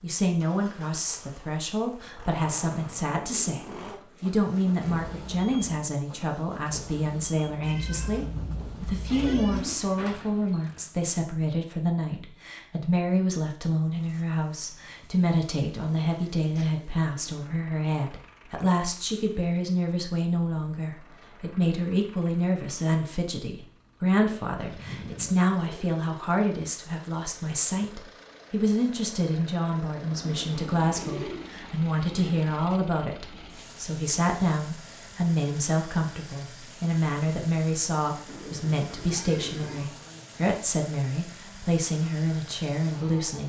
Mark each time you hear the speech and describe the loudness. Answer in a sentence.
The speech can be heard from 0.0 to 43.4 s, at a steady volume.